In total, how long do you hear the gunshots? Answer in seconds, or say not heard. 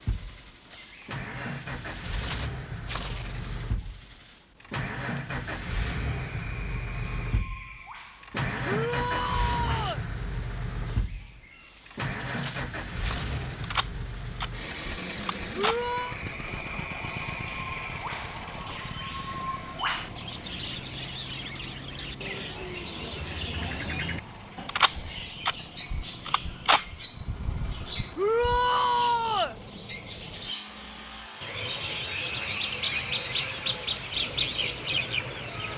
7 s.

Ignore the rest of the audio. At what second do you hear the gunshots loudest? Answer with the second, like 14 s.
27 s.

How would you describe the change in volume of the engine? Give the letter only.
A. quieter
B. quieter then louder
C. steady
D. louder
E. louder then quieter
A.